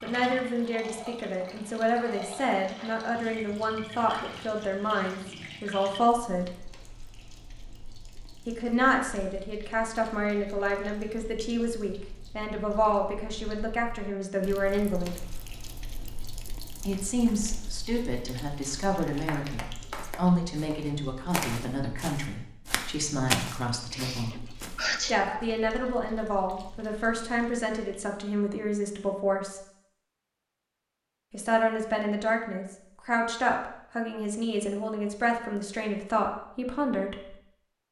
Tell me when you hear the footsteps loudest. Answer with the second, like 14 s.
23 s.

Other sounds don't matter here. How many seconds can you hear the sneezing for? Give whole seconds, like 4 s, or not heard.
2 s.